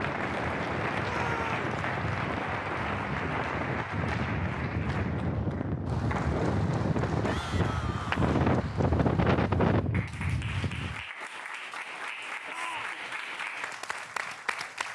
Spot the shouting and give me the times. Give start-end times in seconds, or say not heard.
1.0-1.7, 7.2-8.4, 12.4-13.1.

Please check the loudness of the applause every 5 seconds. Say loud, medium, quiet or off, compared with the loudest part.
loud, medium, loud.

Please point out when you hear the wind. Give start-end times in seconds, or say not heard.
0.0-11.1.